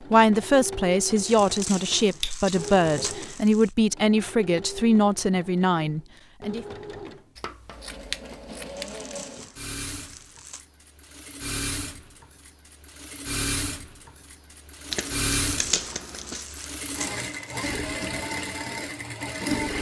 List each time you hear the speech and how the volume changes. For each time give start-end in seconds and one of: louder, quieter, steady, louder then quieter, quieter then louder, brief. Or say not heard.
0.1-6.7 steady.